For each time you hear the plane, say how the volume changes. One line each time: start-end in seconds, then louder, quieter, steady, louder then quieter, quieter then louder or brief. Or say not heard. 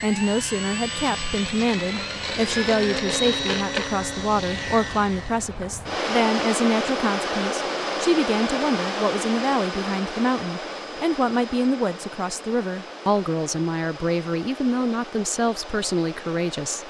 0.0-16.8 quieter.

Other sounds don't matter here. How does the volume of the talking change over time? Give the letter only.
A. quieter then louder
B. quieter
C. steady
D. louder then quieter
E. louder
C.